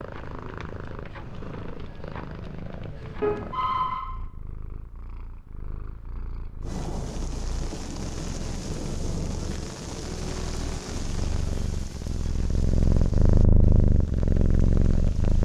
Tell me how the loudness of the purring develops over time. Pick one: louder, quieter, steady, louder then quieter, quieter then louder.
quieter then louder.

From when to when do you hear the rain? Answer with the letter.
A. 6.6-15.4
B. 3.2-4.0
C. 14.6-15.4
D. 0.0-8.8
A.